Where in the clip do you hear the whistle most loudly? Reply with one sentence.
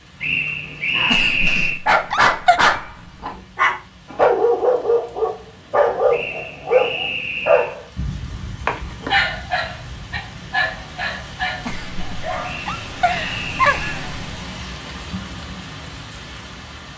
The volume of the whistle peaks at 1 second.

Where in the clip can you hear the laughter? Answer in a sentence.
The laughter can be heard from 1.1 to 2.6 s and from 11.7 to 14.1 s.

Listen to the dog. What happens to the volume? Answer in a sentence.
The volume of the dog goes down.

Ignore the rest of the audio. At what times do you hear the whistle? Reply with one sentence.
You can hear the whistle from 0.2 to 1.8 s, from 6.1 to 7.8 s and from 12.4 to 14.1 s.